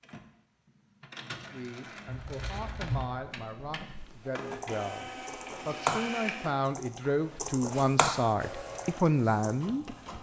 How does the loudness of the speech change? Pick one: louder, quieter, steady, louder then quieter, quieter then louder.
louder.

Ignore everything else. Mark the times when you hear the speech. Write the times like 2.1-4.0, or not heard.
1.5-10.1.